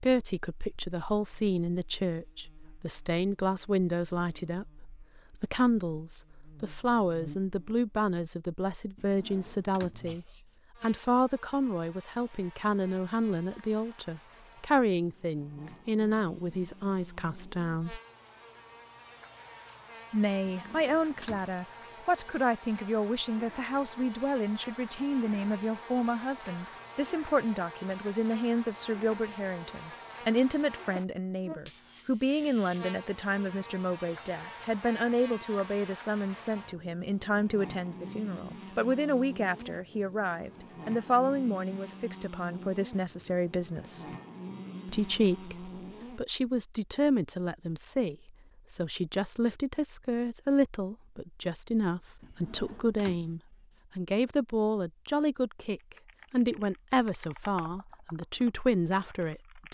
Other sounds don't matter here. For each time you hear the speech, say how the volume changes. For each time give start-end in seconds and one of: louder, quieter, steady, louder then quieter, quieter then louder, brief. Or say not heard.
0.0-18.0 steady
20.1-44.0 steady
44.9-59.6 steady.